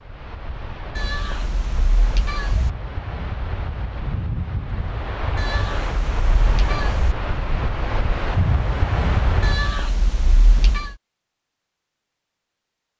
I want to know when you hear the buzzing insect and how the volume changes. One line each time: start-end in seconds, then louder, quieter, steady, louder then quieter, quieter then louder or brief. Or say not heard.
not heard.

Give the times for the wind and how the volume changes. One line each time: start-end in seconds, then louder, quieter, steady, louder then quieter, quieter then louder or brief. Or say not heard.
0.0-9.8 louder.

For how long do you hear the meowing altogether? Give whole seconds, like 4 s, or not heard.
5 s.